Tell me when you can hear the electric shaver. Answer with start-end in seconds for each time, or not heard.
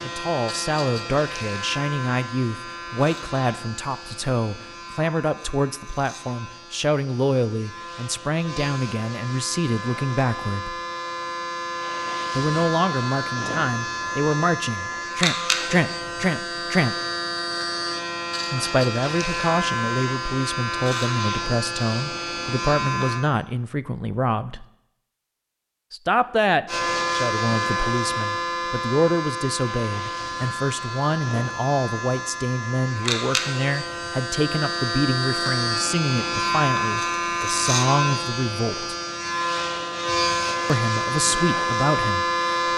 0.0-23.2, 26.6-42.7.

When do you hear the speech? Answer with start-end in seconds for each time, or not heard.
0.0-10.8, 12.3-16.9, 18.5-24.6, 25.9-39.0, 40.6-42.7.